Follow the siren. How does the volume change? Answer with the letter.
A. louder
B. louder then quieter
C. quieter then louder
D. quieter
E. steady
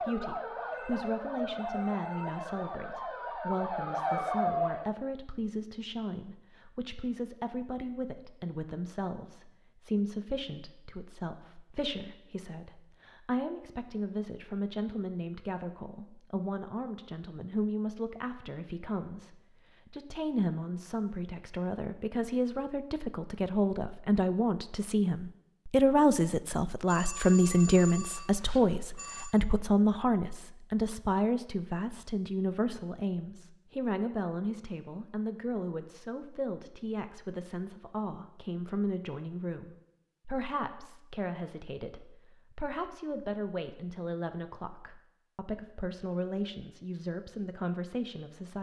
A.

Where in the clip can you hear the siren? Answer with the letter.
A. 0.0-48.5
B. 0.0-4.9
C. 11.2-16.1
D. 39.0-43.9
B.